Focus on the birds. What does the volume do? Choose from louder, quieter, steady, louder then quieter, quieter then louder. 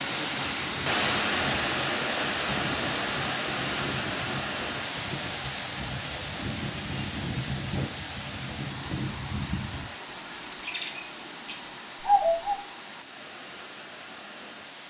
louder.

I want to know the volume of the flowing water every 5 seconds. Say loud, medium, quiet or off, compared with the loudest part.
loud, medium, quiet.